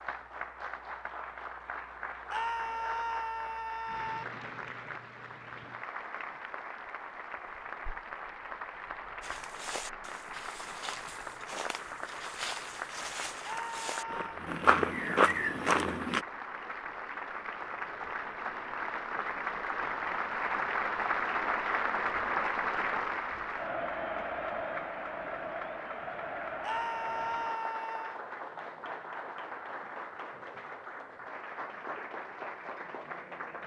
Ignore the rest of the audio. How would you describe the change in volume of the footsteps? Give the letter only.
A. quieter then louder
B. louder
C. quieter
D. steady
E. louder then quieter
B.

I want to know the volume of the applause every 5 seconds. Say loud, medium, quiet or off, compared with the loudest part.
medium, medium, medium, medium, loud, medium, medium.